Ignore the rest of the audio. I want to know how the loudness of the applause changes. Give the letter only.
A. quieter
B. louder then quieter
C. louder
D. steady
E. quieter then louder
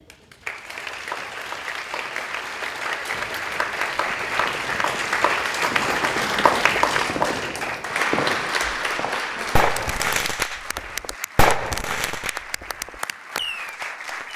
B.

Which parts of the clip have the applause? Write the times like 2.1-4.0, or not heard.
0.0-14.3.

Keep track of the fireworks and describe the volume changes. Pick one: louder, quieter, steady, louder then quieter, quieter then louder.
louder then quieter.